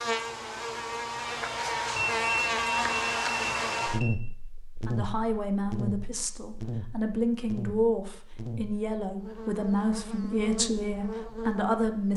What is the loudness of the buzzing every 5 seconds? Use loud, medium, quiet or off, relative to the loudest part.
loud, medium, medium.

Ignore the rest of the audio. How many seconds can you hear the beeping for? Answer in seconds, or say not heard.
2 s.